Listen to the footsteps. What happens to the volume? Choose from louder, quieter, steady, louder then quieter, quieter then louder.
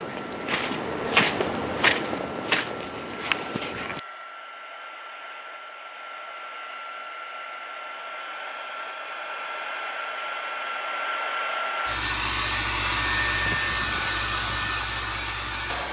louder then quieter.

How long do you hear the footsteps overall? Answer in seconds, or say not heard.
4 s.